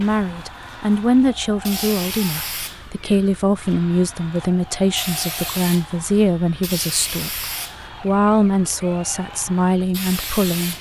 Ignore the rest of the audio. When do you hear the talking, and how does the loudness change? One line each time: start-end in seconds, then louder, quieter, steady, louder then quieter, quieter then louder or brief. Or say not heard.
0.0-10.7 steady.